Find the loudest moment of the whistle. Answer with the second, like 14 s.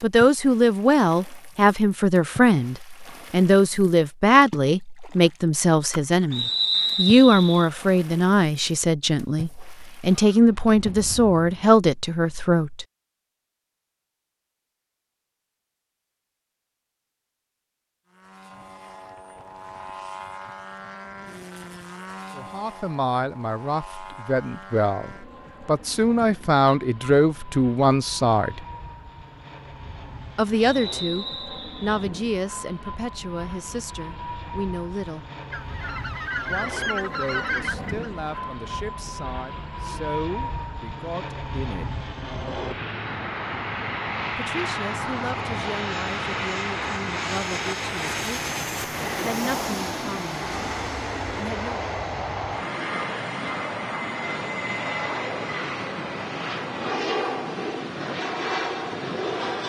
7 s.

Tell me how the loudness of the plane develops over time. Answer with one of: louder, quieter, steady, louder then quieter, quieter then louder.
louder.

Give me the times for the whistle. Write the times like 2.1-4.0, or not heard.
6.3-7.7, 30.7-31.9.